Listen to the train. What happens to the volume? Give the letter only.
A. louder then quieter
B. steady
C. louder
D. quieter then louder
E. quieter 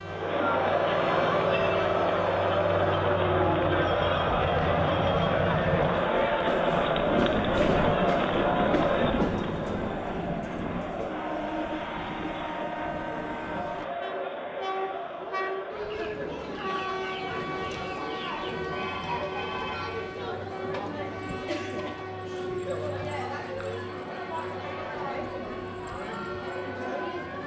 E.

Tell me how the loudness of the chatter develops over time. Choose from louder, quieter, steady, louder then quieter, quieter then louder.
quieter.